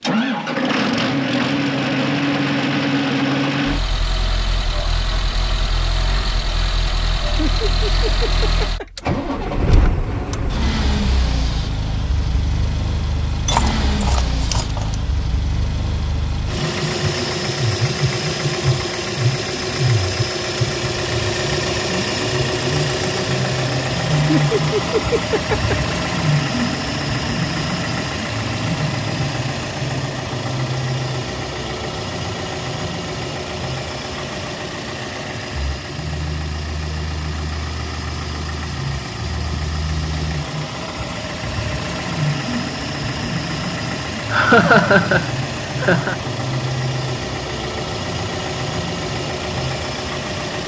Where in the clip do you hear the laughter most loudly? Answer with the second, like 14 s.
45 s.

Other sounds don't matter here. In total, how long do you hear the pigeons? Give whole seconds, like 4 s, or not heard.
not heard.